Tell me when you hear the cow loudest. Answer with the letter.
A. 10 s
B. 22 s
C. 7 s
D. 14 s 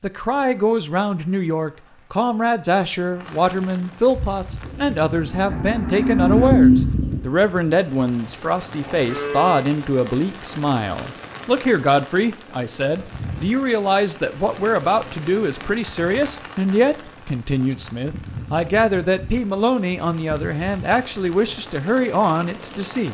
C.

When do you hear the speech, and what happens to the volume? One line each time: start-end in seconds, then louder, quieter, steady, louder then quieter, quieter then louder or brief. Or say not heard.
0.0-23.0 steady.